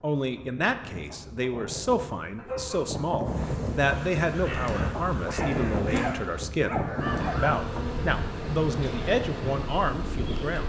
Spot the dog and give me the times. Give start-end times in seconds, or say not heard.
2.4-3.7, 5.4-7.4.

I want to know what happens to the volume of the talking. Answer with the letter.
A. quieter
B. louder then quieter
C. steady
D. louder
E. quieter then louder
C.